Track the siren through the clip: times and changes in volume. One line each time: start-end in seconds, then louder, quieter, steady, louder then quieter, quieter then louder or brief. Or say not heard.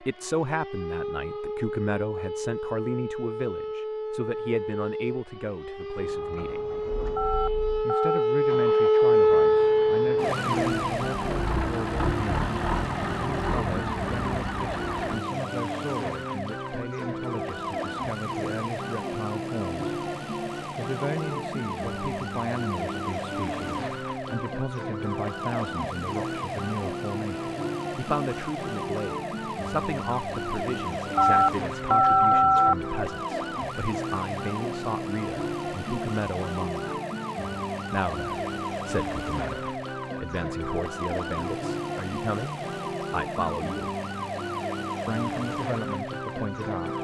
0.0-47.0 quieter.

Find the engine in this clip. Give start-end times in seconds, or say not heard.
6.0-15.2.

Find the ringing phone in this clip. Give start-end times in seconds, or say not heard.
7.2-8.2, 31.1-32.8.